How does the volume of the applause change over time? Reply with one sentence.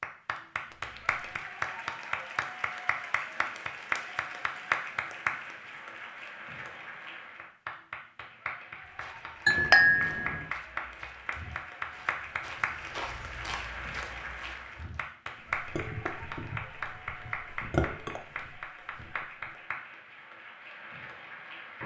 The loudness of the applause goes down.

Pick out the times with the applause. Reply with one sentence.
The applause can be heard from 0.0 to 21.8 s.